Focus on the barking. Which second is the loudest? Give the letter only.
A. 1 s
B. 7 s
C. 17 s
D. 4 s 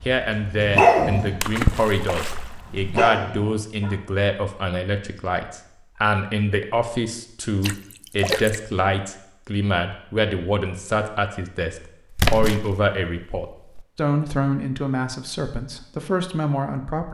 A.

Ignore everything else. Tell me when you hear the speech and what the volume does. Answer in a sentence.
You can hear the speech from 0.0 to 17.1 s, at a steady volume.